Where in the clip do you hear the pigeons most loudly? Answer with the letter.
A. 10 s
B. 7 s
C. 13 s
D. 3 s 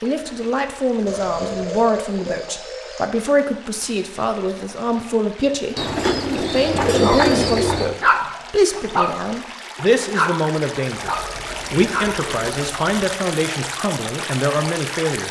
B.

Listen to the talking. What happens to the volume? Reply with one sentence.
The loudness of the talking stays about the same.